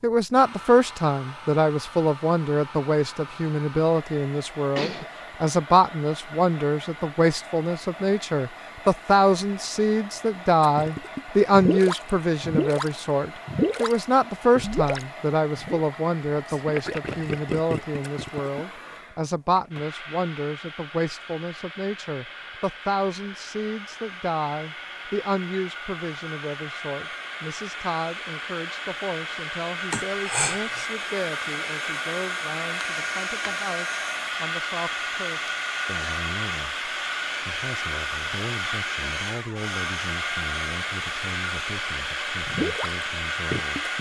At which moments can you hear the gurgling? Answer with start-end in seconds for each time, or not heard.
10.6-15.9, 16.6-18.6, 42.5-43.9.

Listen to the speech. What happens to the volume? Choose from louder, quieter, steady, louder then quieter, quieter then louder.
quieter.